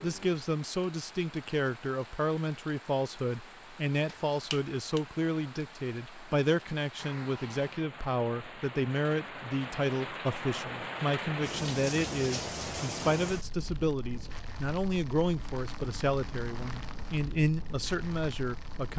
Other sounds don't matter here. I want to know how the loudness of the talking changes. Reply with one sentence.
The loudness of the talking stays about the same.